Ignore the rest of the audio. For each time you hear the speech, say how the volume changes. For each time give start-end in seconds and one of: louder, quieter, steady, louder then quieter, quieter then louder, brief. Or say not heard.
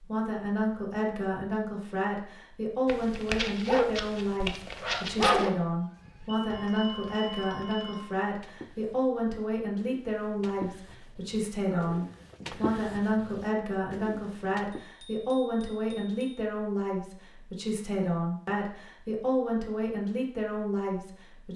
0.0-21.5 steady.